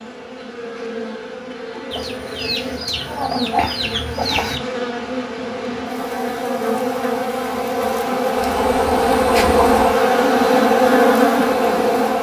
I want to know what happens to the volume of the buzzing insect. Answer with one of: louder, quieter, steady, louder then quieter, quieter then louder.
louder.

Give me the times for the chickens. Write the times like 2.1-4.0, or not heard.
1.9-4.6, 8.3-9.9.